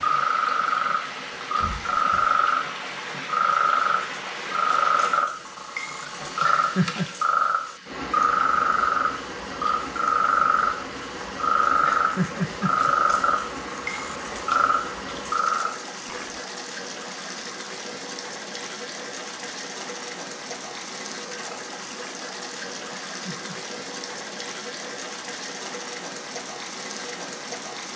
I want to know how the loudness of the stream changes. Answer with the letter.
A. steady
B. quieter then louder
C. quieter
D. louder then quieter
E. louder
A.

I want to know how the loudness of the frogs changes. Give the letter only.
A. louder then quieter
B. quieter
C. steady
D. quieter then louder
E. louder
C.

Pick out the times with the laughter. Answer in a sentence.
The laughter can be heard from 6.4 to 7.1 s, from 11.8 to 12.9 s and from 23.1 to 23.6 s.